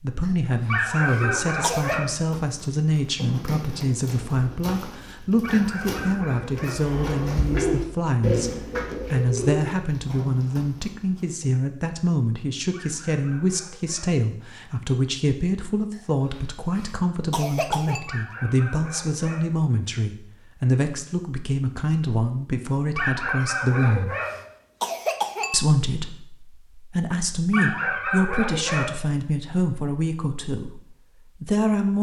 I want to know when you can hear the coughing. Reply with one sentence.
You can hear the coughing from 0.2 to 2.0 s, from 16.4 to 18.1 s and from 24.2 to 25.6 s.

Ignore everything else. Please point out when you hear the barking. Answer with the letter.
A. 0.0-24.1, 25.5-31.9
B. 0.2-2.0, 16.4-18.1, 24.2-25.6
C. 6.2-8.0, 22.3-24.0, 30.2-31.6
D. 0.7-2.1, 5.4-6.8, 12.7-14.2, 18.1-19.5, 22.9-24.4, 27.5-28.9
D.